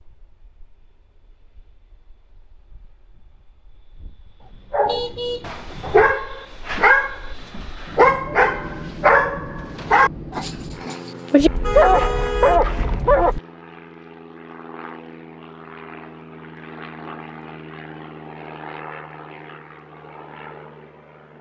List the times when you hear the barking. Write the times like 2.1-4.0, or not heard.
4.7-13.3.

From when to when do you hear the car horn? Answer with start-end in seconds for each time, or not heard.
4.8-6.2, 11.3-13.4.